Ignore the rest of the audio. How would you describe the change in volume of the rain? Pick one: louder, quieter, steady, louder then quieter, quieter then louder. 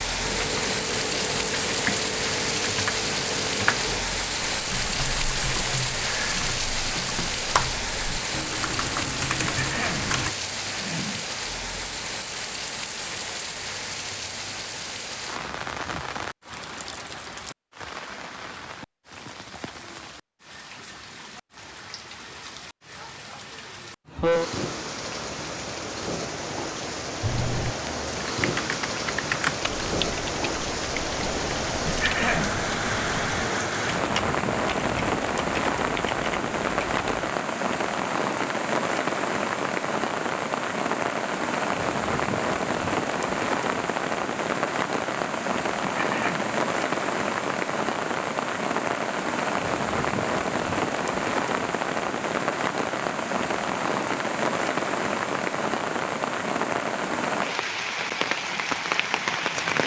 quieter then louder.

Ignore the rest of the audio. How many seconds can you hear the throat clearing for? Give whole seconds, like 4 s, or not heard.
3 s.